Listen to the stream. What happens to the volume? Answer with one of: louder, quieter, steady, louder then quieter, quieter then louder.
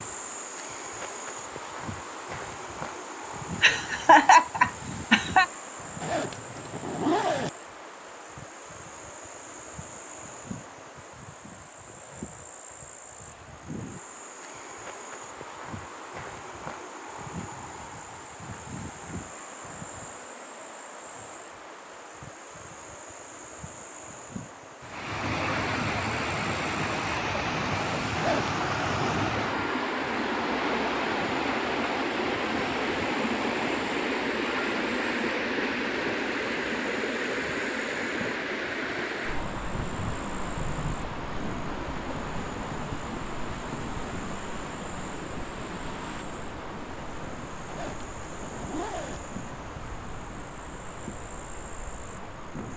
quieter.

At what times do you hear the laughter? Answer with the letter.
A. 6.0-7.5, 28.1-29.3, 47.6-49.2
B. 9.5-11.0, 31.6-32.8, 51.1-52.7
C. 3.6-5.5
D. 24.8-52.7
C.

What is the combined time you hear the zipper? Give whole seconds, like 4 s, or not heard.
4 s.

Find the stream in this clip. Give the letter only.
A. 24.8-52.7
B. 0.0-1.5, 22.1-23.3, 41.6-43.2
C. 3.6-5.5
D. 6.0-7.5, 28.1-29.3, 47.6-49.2
A.